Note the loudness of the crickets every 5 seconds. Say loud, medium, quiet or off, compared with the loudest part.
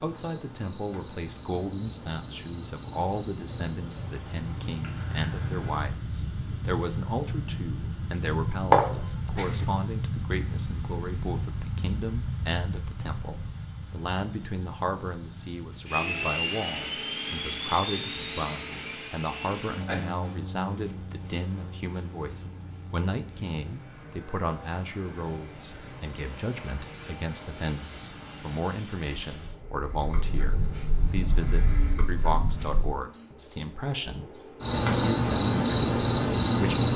quiet, quiet, quiet, quiet, quiet, quiet, loud, loud.